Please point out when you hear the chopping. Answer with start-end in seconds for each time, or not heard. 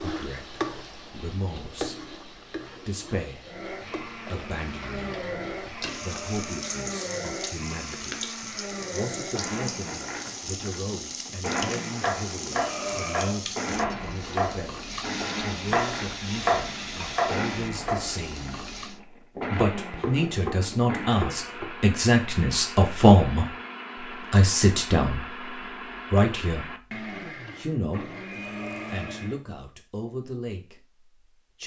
11.6-21.9.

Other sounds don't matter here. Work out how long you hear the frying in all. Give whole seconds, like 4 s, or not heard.
19 s.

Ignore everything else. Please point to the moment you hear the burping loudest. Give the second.
13 s.